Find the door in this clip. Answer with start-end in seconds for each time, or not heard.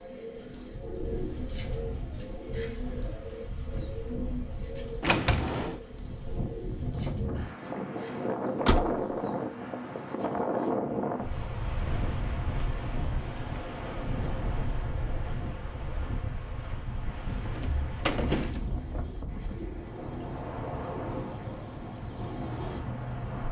5.0-5.8, 8.7-9.1, 17.6-18.8.